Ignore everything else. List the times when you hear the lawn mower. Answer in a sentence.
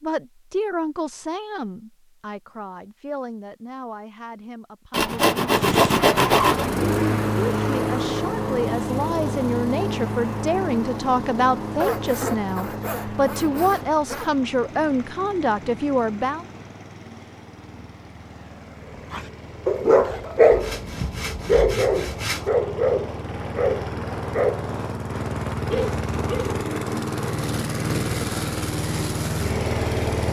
You can hear the lawn mower from 5.5 to 30.2 s.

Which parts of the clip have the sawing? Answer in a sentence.
You can hear the sawing from 4.9 to 6.7 s, from 11.8 to 14.3 s and from 20.5 to 22.5 s.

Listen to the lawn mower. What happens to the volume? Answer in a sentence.
The volume of the lawn mower goes down, then up.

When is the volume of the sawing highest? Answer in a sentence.
The loudest moment of the sawing is at 6 seconds.